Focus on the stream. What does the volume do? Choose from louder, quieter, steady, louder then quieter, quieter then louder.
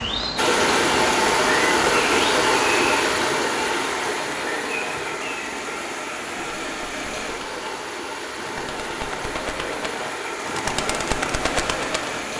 quieter.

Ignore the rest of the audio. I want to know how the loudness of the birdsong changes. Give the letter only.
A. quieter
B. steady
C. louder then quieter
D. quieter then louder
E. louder
D.